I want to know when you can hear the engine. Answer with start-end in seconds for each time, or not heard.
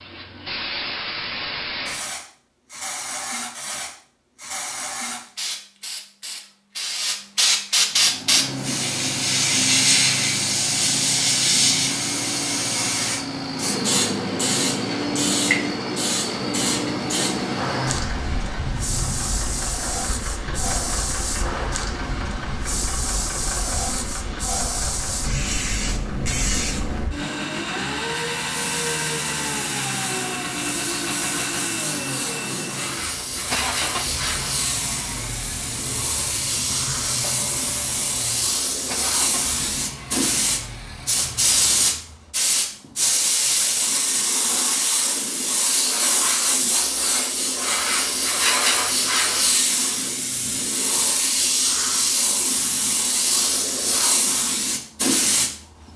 7.8-42.1.